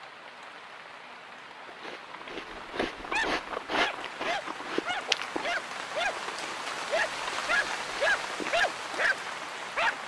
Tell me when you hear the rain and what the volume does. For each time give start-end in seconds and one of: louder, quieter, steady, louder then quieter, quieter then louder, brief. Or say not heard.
0.0-10.0 louder.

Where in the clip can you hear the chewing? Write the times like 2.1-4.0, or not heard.
1.6-8.6.